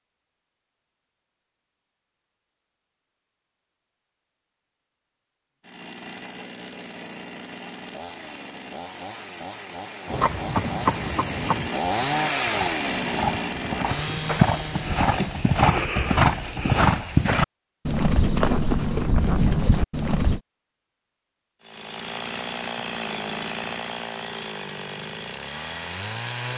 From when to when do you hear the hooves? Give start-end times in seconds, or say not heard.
10.1-20.4.